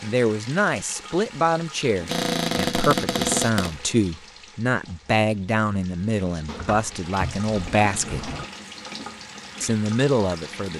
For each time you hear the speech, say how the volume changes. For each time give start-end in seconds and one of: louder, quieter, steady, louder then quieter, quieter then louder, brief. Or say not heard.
0.0-8.3 steady
9.6-10.7 brief.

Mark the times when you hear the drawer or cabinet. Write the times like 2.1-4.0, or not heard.
2.0-3.8, 6.5-8.4.